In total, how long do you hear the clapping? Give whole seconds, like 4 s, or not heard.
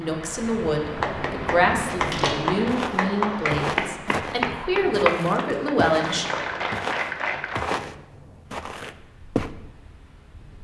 7 s.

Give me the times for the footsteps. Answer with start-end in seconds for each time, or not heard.
1.7-9.5.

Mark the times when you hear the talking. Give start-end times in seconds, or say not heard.
0.0-6.2.